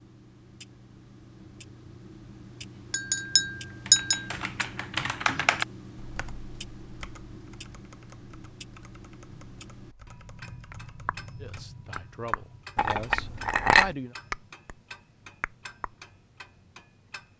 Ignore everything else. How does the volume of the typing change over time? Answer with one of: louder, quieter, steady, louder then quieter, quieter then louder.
quieter.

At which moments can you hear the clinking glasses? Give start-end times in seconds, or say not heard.
2.9-4.2, 12.8-13.9.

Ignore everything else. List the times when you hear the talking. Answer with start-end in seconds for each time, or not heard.
11.4-14.2.